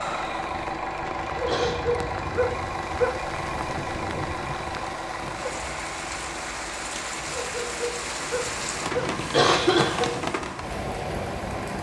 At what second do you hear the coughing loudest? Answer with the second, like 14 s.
10 s.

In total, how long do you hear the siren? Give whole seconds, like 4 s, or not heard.
not heard.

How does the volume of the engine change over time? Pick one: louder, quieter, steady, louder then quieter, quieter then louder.
quieter.